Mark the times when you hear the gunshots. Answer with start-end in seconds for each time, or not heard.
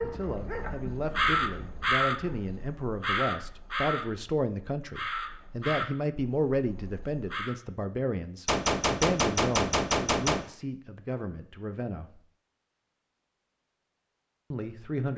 8.4-10.4.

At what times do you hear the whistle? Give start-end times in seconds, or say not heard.
not heard.